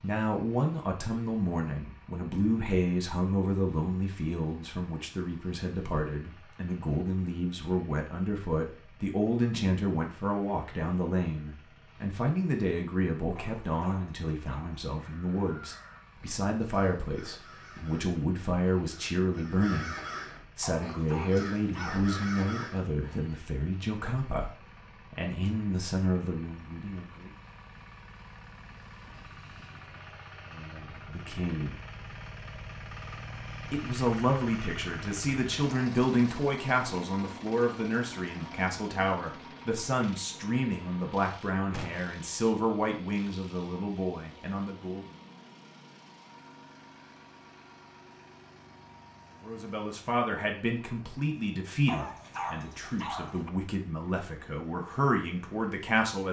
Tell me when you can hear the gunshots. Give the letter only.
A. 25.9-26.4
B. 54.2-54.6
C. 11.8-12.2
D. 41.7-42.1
D.